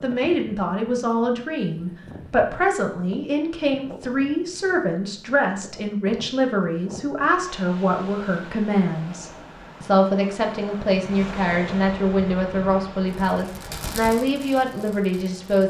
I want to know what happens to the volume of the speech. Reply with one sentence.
The volume of the speech stays about the same.